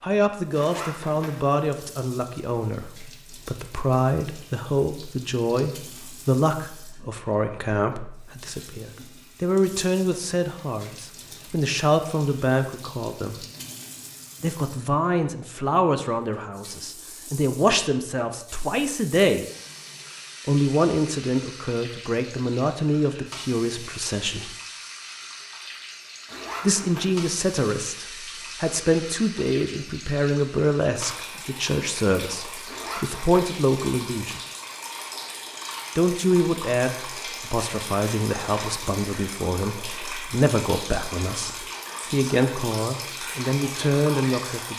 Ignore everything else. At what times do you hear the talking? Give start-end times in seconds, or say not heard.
0.0-13.4, 14.4-19.4, 20.4-24.6, 26.6-34.4, 36.0-44.7.